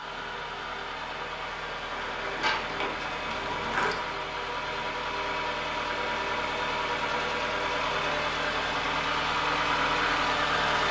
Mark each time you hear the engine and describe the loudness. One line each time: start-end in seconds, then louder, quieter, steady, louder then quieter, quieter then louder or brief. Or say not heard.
0.0-10.8 louder.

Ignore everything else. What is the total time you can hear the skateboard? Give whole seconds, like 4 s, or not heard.
2 s.